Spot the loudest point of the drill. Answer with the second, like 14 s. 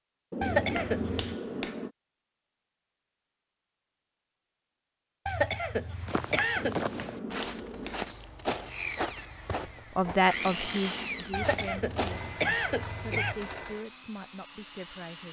11 s.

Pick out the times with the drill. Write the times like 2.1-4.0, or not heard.
8.7-15.2.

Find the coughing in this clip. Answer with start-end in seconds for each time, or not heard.
0.4-1.4, 5.2-6.8, 11.3-13.3.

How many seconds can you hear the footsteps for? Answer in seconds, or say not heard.
6 s.